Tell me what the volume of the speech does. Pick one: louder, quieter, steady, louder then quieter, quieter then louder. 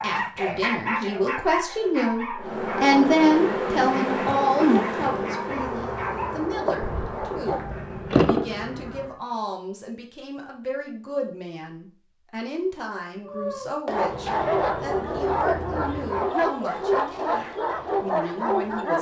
quieter.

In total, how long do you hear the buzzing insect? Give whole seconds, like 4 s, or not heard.
9 s.